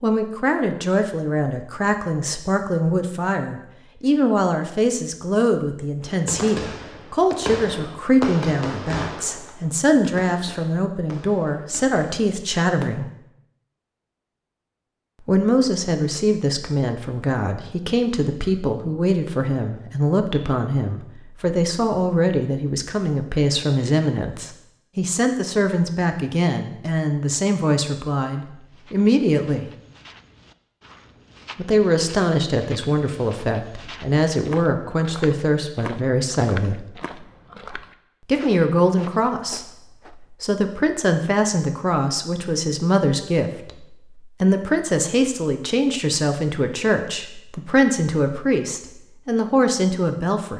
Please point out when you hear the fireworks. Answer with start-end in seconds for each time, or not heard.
6.0-12.9.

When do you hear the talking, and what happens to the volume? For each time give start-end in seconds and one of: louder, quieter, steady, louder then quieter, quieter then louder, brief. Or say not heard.
0.0-13.1 steady
15.2-29.6 steady
31.6-36.9 steady
38.2-50.5 steady.